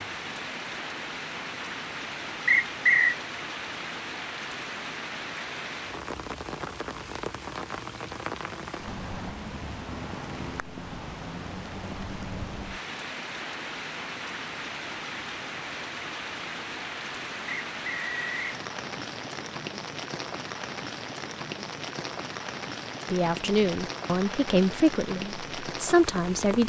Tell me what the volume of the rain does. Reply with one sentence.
The volume of the rain stays about the same.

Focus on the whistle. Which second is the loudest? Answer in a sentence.
The loudest moment of the whistle is at 3 seconds.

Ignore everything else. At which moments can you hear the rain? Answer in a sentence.
You can hear the rain from 0.0 to 26.6 s.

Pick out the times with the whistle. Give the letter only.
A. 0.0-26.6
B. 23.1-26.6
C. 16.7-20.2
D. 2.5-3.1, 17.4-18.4
D.